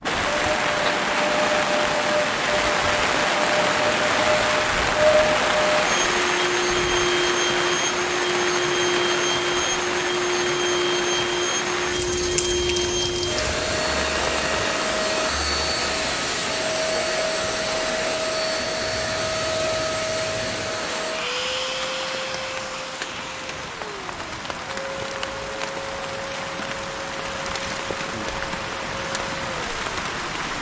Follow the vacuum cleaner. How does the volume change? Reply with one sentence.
The loudness of the vacuum cleaner goes down.